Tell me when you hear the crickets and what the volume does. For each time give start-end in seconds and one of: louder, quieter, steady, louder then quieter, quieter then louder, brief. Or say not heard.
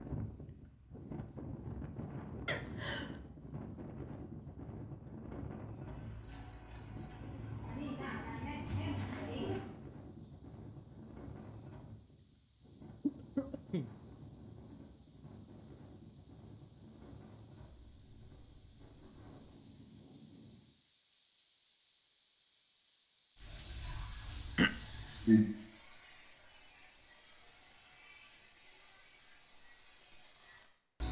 0.0-31.0 louder.